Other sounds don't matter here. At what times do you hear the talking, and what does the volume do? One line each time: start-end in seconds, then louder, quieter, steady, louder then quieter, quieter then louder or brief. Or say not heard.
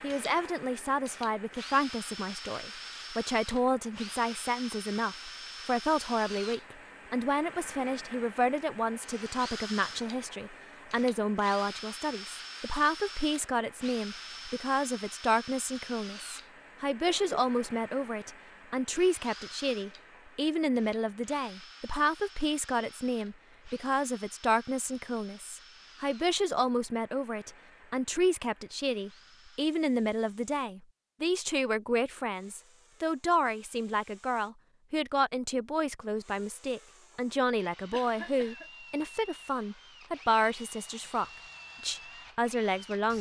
0.0-43.1 steady.